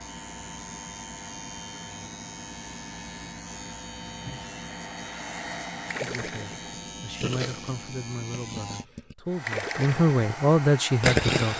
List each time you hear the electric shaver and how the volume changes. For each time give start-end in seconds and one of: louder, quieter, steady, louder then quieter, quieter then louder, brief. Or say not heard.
0.0-8.8 steady.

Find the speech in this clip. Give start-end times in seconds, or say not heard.
6.0-11.5.